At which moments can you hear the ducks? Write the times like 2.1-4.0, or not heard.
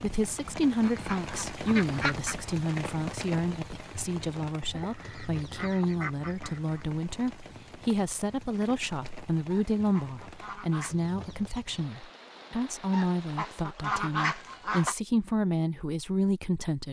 0.8-2.4, 4.7-6.8, 9.5-10.9, 12.9-14.9.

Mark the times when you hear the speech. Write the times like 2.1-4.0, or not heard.
0.0-16.8.